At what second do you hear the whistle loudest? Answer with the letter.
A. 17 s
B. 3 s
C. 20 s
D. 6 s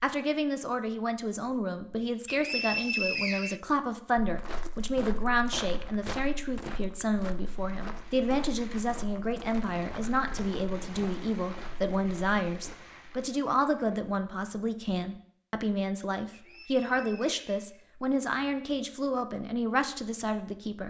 B.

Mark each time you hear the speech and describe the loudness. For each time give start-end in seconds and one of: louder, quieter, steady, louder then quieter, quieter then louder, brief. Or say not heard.
0.0-20.8 steady.